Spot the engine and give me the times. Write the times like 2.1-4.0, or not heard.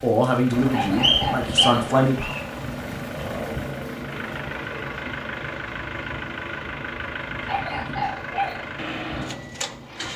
0.2-10.1.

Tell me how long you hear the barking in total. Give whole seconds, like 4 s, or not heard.
2 s.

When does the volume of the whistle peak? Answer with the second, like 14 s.
1 s.